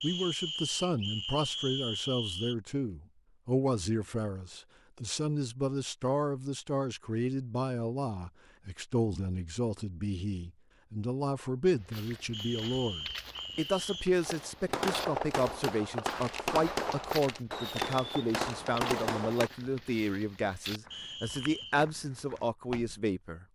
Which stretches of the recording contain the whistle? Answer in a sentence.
The whistle can be heard from 0.0 to 2.5 s, from 12.3 to 14.1 s and from 20.9 to 21.8 s.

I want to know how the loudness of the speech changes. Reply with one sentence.
The loudness of the speech stays about the same.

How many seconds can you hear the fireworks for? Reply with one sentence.
The fireworks can be heard for 5 seconds in total.